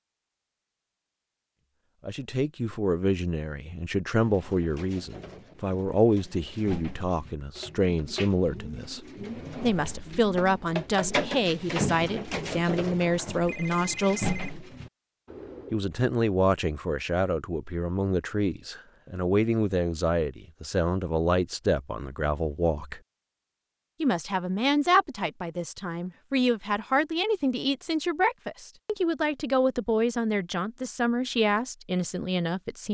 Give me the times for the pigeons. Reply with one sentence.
You can hear the pigeons from 4.2 to 15.8 s.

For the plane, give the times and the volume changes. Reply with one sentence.
The plane can't be heard in this clip.